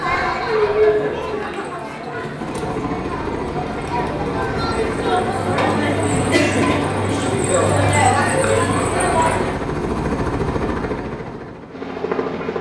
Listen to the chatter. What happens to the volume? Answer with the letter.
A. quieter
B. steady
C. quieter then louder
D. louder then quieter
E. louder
C.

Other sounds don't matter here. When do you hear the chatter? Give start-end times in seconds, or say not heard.
0.0-9.6.